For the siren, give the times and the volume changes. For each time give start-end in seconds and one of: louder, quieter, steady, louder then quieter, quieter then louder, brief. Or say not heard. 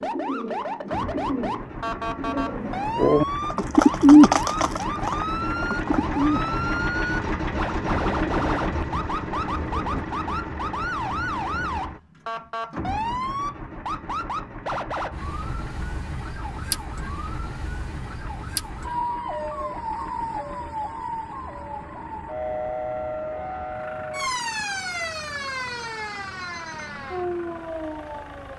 0.0-28.5 steady.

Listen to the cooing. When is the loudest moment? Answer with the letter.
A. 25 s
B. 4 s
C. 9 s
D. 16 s
B.